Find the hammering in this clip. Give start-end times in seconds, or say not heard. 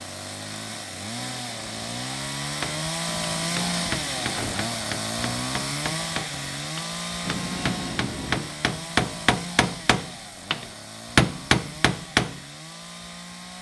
2.6-12.4.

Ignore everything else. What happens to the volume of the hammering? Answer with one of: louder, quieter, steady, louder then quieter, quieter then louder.
louder.